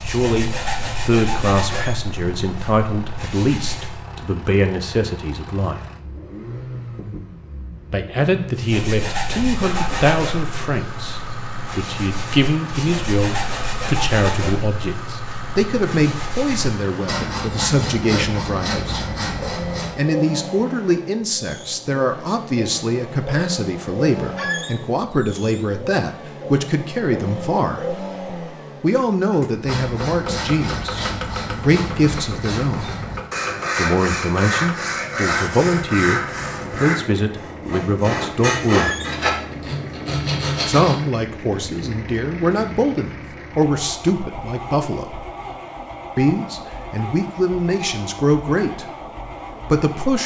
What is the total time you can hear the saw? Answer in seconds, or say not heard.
27 s.